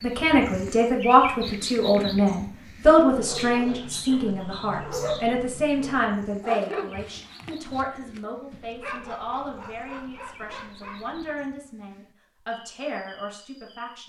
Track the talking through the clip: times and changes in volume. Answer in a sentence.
The talking can be heard from 0.0 to 14.0 s, getting quieter.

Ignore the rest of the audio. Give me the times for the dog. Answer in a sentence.
You can hear the dog from 3.0 to 11.5 s.